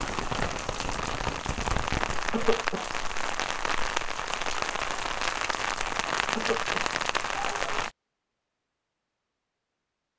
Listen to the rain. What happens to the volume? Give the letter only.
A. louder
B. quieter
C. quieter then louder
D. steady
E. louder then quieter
D.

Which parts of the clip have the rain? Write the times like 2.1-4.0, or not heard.
0.0-7.9.